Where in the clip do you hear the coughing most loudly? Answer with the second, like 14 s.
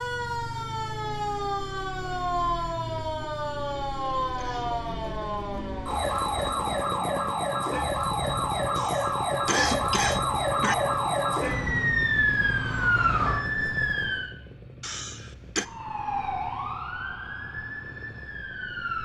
10 s.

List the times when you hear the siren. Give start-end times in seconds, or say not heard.
0.0-14.3, 15.6-19.0.